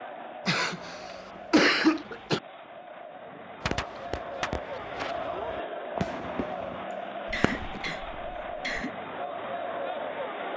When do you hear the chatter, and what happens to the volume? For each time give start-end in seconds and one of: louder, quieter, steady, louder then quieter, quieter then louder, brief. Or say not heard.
0.0-10.5 louder.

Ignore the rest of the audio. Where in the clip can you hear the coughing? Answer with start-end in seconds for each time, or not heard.
0.5-2.4, 6.9-8.9.